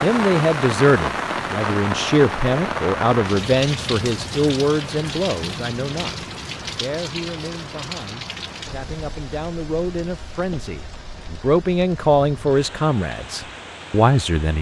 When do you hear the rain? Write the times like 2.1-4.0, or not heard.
0.0-14.5.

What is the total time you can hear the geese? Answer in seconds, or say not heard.
not heard.